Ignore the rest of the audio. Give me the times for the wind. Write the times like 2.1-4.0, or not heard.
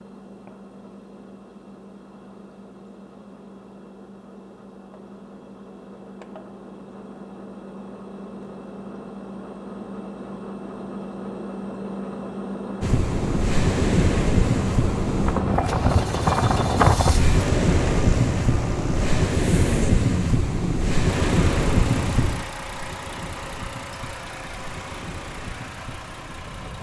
12.8-26.7.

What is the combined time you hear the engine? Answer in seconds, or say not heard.
27 s.